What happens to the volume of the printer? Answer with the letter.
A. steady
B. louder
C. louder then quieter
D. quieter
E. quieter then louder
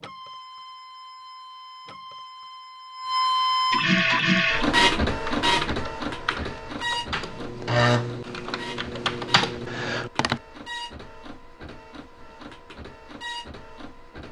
C.